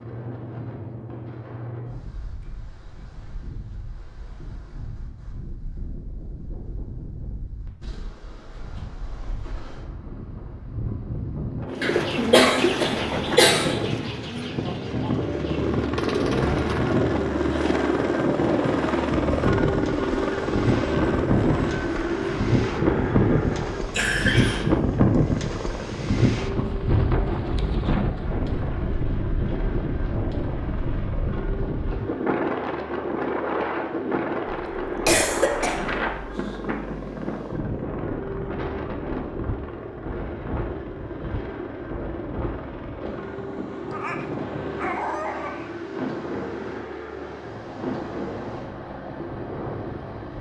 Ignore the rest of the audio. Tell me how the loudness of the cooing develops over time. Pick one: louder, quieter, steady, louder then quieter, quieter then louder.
quieter then louder.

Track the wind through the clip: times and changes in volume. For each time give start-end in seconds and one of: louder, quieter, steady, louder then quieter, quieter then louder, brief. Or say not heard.
0.0-50.3 louder then quieter.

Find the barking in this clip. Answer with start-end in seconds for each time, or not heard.
43.9-45.9.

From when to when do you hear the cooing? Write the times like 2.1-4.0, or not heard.
11.7-16.9.